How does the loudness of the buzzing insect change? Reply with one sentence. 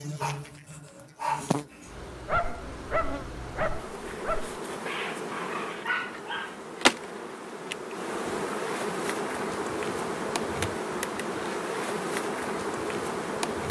The loudness of the buzzing insect goes up.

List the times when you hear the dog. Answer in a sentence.
The dog can be heard from 0.2 to 6.6 s.